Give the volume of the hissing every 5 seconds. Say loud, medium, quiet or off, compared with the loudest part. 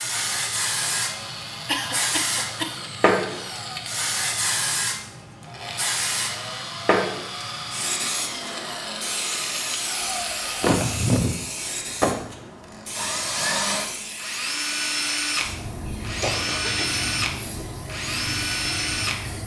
loud, loud, medium, medium.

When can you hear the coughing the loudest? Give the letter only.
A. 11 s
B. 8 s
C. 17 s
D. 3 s
A.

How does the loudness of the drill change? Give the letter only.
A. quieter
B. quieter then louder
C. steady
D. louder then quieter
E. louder
E.